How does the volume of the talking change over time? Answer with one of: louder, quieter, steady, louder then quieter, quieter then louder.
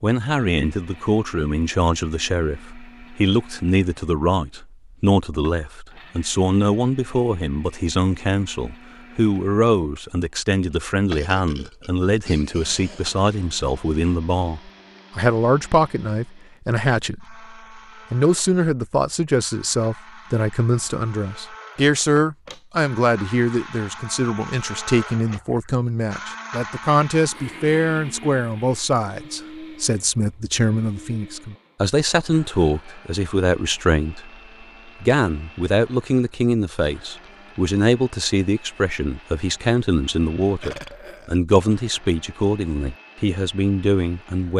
steady.